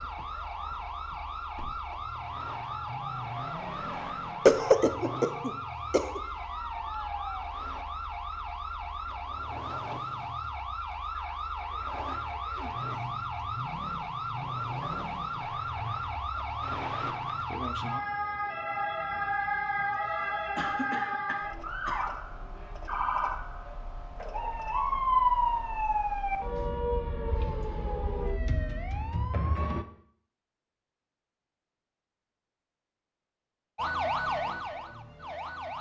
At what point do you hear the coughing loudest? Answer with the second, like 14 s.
5 s.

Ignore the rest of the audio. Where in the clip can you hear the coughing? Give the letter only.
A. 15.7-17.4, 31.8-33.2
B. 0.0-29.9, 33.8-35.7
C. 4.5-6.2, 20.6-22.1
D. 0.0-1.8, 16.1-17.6
C.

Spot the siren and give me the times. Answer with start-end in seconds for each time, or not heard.
0.0-29.9, 33.8-35.7.